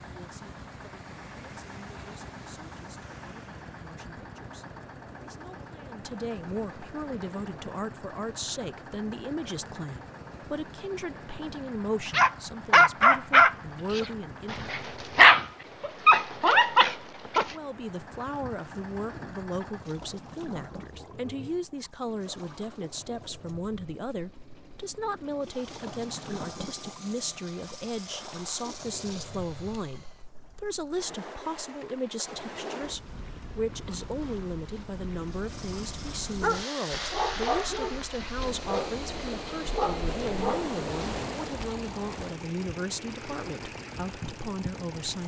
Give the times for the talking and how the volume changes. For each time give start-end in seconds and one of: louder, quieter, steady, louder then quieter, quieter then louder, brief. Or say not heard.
0.0-14.7 louder
17.4-45.2 steady.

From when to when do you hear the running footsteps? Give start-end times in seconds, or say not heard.
not heard.